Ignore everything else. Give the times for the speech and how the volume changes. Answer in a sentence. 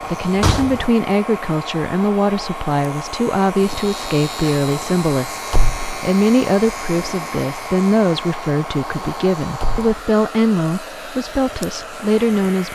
You can hear the speech from 0.1 to 12.7 s, at a steady volume.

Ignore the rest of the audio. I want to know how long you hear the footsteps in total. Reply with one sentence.
The footsteps can't be heard in this clip.